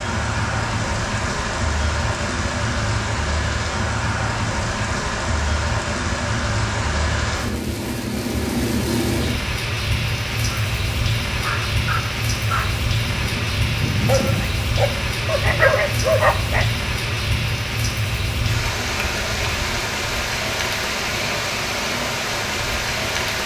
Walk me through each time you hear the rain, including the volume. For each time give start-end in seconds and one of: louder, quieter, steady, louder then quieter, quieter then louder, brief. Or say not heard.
0.0-23.4 steady.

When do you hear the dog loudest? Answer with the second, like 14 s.
16 s.